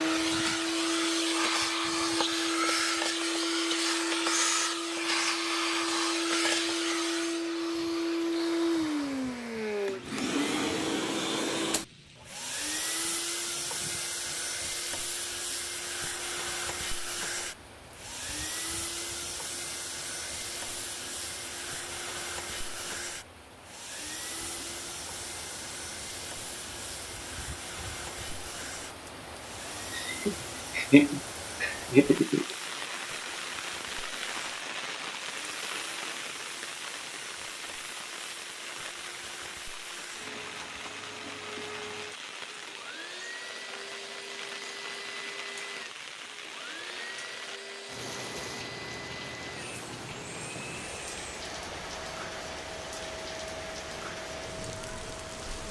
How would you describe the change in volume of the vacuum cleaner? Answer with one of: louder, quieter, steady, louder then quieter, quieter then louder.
quieter.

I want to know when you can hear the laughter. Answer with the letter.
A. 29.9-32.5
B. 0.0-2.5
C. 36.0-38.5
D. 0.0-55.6
A.